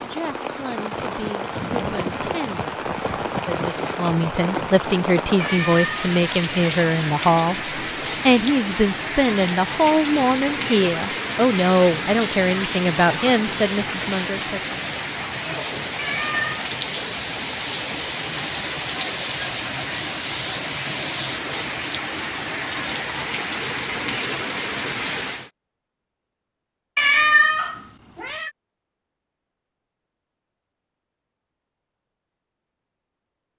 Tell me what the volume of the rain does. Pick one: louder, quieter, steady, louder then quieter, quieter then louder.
steady.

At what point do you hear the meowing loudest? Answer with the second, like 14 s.
27 s.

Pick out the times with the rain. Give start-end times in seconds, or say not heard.
0.0-25.5.